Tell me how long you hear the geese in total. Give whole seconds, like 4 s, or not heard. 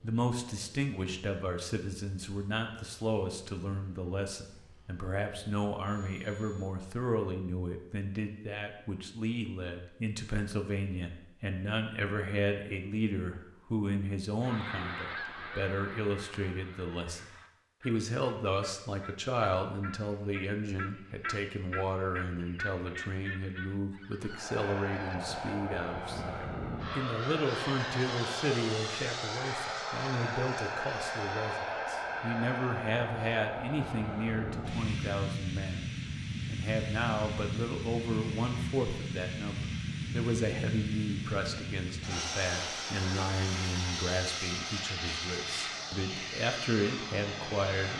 11 s.